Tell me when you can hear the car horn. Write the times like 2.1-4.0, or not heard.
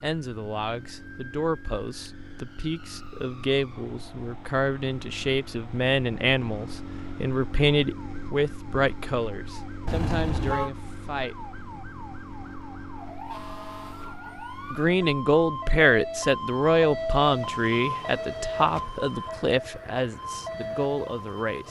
9.8-10.7.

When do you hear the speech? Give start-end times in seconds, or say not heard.
0.0-11.3, 14.7-21.6.